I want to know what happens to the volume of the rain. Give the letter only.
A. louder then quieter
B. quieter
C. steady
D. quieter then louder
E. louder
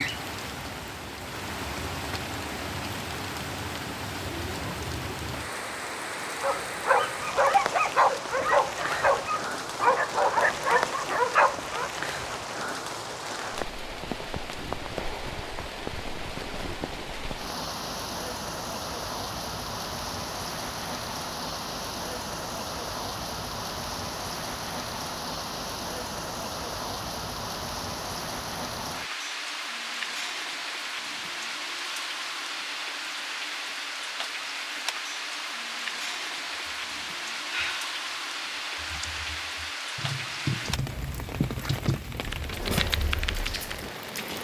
C.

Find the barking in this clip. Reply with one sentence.
You can hear the barking from 6.4 to 11.9 s.